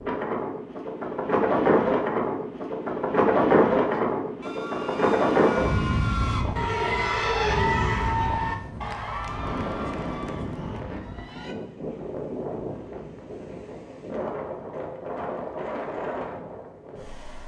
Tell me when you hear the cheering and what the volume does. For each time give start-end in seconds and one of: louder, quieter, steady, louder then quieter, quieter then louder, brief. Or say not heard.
3.9-11.6 louder then quieter.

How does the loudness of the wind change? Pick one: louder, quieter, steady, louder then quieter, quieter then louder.
quieter.